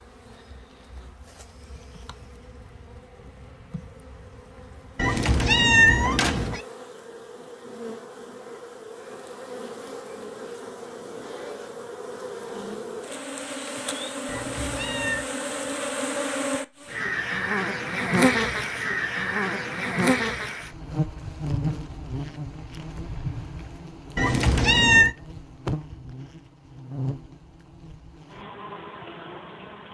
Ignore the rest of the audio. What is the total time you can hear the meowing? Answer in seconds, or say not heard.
4 s.